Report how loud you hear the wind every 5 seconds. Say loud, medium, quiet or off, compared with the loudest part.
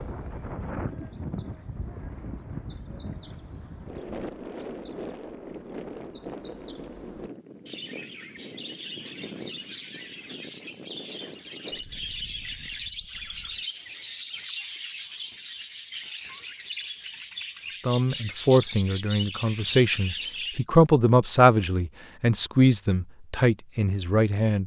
loud, loud, medium, off, off.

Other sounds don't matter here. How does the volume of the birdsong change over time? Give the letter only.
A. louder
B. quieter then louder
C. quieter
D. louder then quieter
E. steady
A.